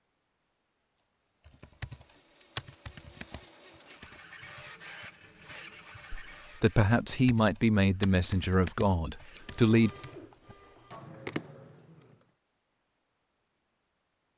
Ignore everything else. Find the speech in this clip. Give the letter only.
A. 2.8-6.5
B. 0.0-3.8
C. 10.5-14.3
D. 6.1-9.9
D.